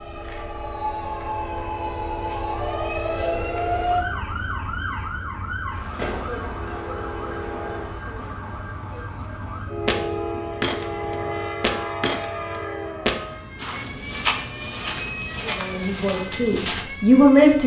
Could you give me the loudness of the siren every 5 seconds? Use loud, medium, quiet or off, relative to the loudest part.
loud, medium, medium, medium.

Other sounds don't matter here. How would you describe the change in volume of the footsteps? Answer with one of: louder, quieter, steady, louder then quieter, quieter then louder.
quieter.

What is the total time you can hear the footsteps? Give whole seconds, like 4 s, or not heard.
7 s.